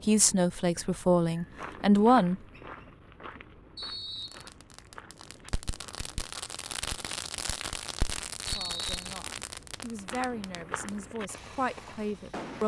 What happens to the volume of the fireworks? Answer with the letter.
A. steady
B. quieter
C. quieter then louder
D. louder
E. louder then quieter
E.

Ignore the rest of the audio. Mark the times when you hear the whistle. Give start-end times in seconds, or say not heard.
3.8-4.5, 8.4-9.0.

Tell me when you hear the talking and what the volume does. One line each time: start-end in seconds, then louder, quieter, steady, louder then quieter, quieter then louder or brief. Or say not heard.
0.1-2.4 brief
8.4-12.6 louder.